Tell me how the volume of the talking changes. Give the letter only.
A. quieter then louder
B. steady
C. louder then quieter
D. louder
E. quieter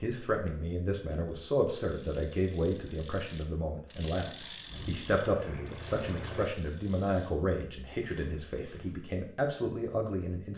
B.